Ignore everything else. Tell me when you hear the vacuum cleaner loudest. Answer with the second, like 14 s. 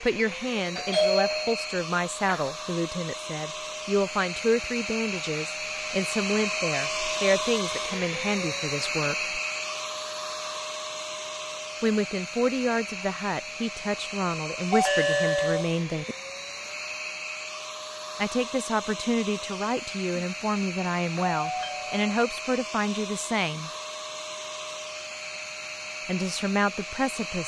7 s.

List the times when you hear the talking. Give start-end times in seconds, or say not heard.
0.0-9.3, 11.8-16.1, 18.1-23.7, 26.1-27.4.